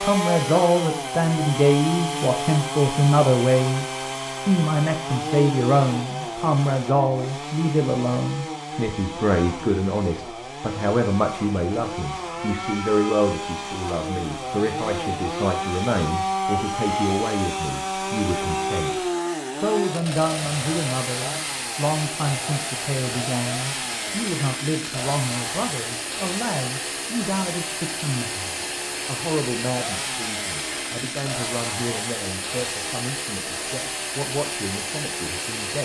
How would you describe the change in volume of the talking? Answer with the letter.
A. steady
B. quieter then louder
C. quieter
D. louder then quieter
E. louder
C.